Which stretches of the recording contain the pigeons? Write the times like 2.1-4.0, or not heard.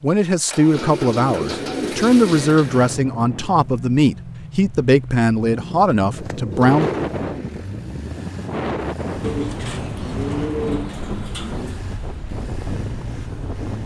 0.7-2.6, 6.2-7.3, 9.2-11.8.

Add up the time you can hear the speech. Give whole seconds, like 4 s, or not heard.
7 s.